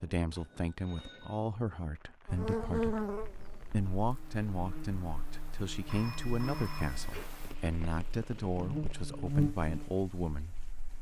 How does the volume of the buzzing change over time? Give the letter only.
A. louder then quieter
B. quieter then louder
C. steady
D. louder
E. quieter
B.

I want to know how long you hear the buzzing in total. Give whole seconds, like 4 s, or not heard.
9 s.